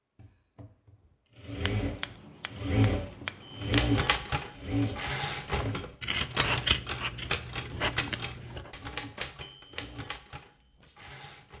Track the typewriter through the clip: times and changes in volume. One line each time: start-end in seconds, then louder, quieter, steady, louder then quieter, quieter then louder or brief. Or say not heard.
3.5-11.5 quieter.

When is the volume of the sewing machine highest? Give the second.
3 s.